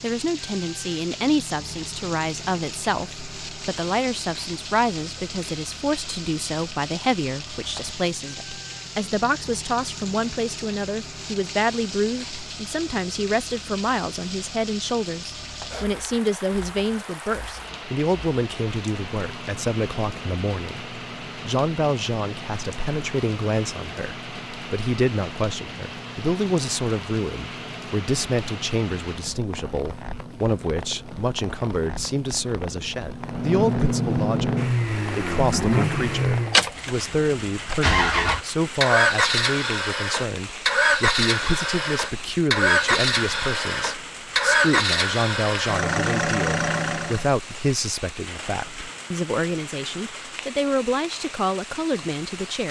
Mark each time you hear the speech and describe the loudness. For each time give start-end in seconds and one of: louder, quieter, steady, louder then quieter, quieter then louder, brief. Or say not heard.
0.0-52.6 steady.